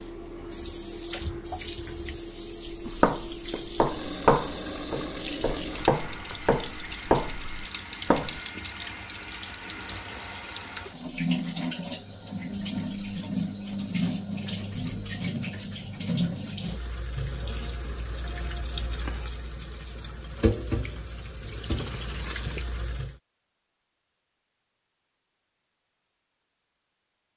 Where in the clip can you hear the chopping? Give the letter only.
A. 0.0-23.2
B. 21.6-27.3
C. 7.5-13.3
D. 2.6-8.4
D.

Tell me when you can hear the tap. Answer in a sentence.
You can hear the tap from 0.0 to 23.2 s.